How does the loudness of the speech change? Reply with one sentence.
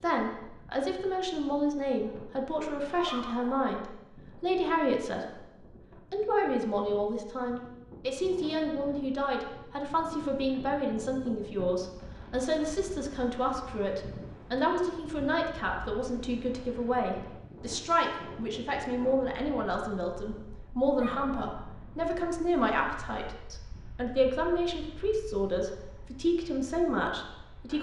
The volume of the speech stays about the same.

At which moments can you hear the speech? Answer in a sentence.
You can hear the speech from 0.0 to 5.5 s and from 6.1 to 27.7 s.